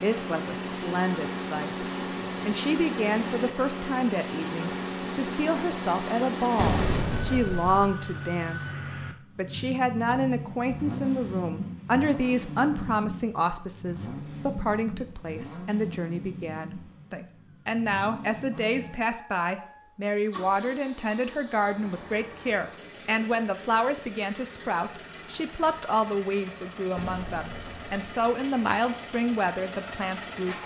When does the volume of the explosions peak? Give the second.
7 s.